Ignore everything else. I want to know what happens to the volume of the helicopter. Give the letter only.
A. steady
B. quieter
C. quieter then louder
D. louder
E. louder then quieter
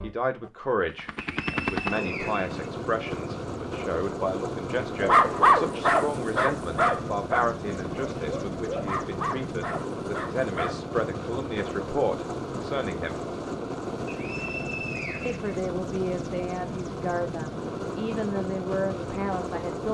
A.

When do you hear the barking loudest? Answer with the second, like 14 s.
5 s.